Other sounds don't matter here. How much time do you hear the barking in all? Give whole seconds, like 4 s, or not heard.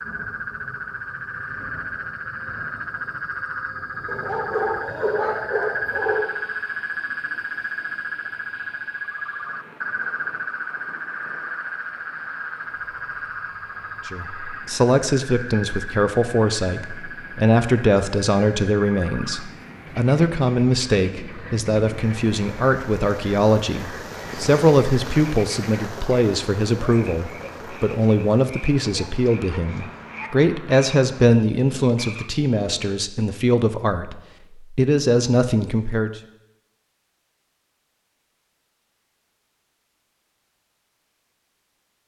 2 s.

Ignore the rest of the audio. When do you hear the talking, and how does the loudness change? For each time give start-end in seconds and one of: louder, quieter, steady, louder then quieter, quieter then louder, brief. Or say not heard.
14.1-36.1 steady.